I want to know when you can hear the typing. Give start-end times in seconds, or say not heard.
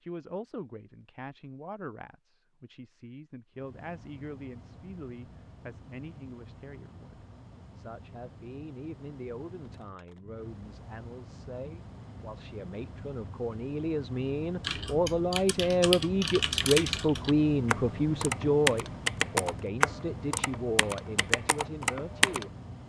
14.6-22.4.